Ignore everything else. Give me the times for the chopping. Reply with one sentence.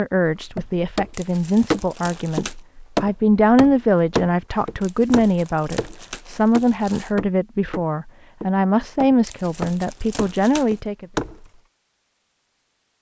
You can hear the chopping from 0.2 to 11.4 s.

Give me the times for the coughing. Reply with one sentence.
The coughing can't be heard in this clip.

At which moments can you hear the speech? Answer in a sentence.
The speech can be heard from 0.0 to 11.1 s.